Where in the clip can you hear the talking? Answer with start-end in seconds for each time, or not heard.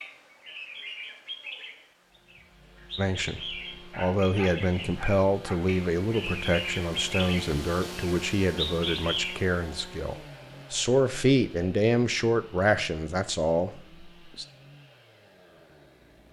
3.0-14.4.